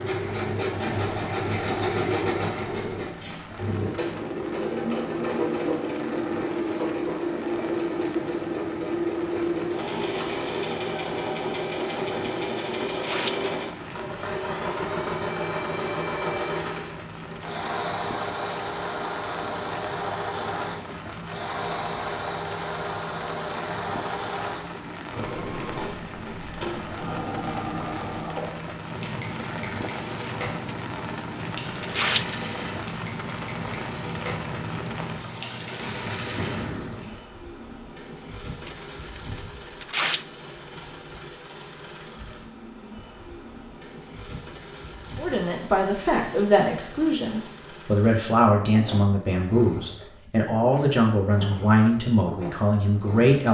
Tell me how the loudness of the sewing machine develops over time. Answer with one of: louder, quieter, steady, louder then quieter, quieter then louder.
quieter.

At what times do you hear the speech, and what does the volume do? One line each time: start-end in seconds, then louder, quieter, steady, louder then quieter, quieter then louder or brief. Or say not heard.
45.1-53.4 steady.